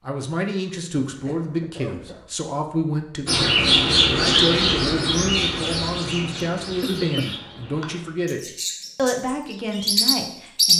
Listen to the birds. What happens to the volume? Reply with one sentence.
The loudness of the birds goes down, then up.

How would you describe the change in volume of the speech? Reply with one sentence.
The loudness of the speech stays about the same.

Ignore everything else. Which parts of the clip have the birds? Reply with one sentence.
The birds can be heard from 3.2 to 10.7 s.